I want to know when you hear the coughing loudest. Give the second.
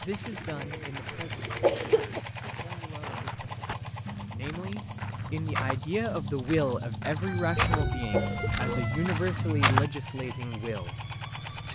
2 s.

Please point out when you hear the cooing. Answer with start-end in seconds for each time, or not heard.
0.2-2.2, 7.5-8.9.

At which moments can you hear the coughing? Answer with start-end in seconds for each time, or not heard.
1.6-2.2, 8.1-8.5.